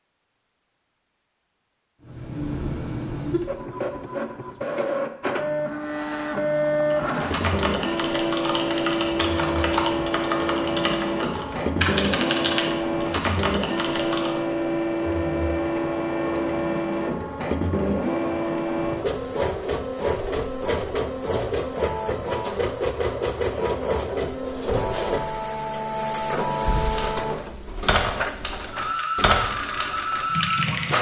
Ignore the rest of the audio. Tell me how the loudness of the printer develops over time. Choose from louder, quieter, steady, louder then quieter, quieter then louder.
steady.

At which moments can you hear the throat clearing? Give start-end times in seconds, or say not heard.
not heard.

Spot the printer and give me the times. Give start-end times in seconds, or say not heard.
2.0-30.9.